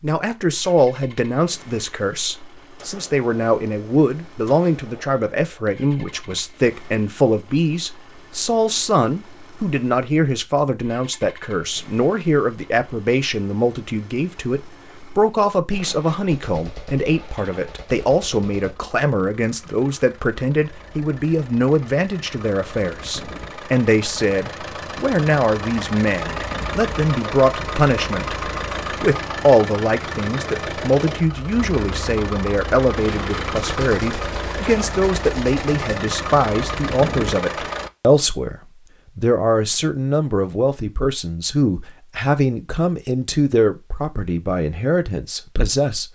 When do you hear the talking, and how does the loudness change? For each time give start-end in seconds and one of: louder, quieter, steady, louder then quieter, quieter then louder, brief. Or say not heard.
0.0-38.5 steady
39.1-46.0 steady.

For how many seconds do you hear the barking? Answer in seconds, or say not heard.
not heard.